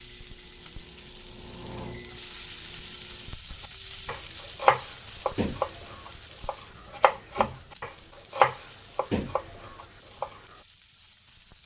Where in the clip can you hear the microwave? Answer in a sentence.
The microwave can be heard from 0.0 to 3.4 s.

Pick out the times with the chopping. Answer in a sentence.
The chopping can be heard from 3.6 to 10.3 s.